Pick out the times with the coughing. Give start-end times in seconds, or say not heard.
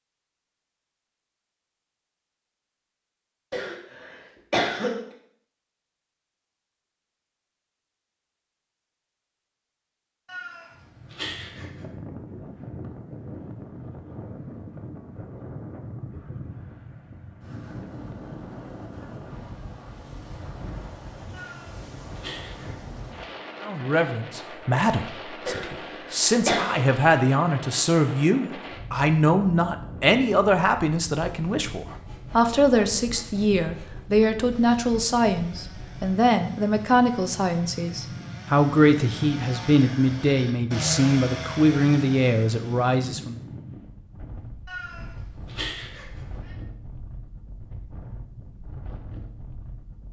3.5-5.0, 25.4-26.9.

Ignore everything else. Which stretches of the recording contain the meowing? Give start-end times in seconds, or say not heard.
10.2-11.8, 21.3-22.8, 44.6-46.5.